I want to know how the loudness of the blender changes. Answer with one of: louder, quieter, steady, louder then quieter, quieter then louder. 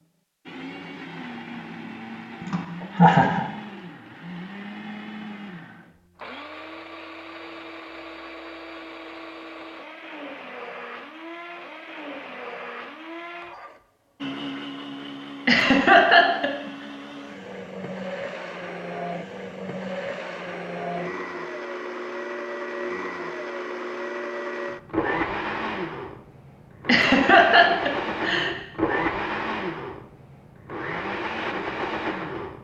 louder.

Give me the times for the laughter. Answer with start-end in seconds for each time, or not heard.
2.4-3.5, 15.4-16.5, 26.9-28.6.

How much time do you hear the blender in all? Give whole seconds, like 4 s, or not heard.
32 s.